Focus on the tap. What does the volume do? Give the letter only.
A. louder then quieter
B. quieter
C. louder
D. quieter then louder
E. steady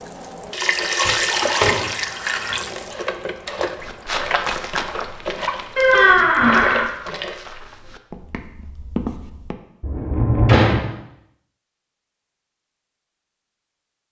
B.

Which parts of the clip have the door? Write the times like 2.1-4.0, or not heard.
1.1-1.9, 5.8-6.8, 9.8-10.8.